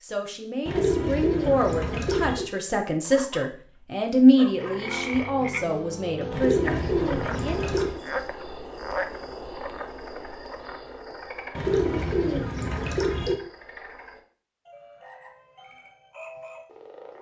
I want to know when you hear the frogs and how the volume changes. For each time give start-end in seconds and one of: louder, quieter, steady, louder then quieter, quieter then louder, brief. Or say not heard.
4.5-17.1 quieter.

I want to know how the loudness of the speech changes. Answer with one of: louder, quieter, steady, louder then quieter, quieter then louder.
louder then quieter.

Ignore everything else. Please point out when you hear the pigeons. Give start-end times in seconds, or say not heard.
0.7-2.5, 6.3-8.0, 11.6-13.4.